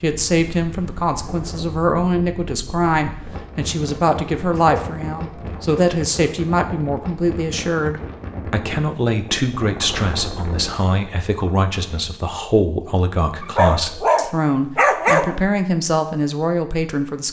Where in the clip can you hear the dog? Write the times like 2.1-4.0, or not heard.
4.5-5.7, 13.4-15.4.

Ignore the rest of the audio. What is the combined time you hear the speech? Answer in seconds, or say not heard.
17 s.